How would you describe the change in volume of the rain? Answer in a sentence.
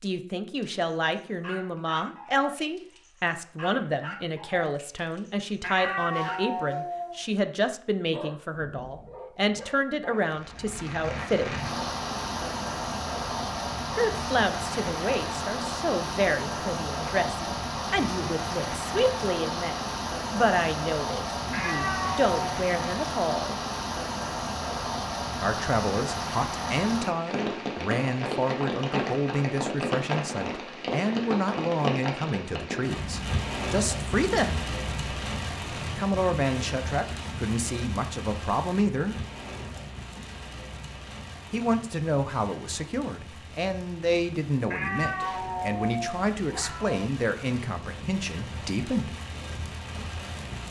The loudness of the rain goes down.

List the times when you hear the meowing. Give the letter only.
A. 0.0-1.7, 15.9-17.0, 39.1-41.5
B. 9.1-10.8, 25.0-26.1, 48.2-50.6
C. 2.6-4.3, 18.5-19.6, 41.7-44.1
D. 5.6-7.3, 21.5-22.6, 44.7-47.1
D.